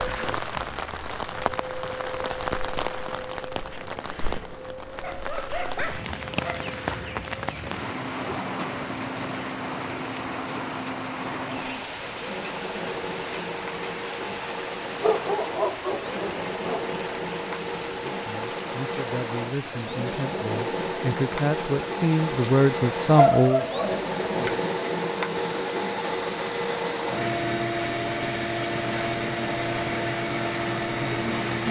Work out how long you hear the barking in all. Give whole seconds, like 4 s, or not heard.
5 s.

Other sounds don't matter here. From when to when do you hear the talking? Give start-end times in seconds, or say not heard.
17.9-23.6.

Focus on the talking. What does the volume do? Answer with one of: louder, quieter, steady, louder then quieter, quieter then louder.
louder.